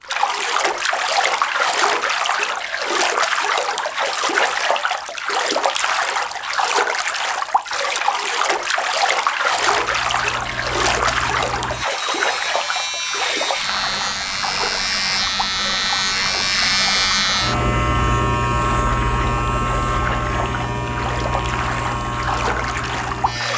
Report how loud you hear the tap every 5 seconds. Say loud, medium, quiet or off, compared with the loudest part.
loud, loud, loud, medium, medium.